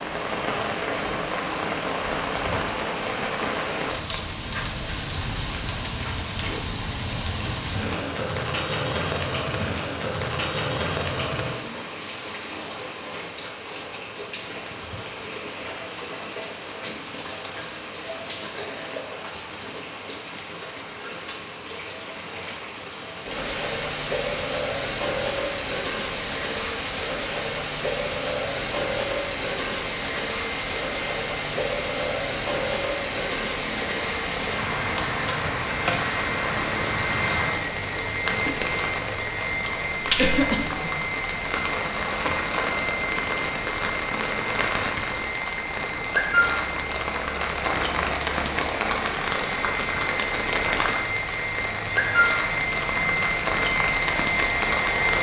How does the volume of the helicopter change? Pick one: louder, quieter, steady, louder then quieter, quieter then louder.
louder.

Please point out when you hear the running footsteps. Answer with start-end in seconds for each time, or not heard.
not heard.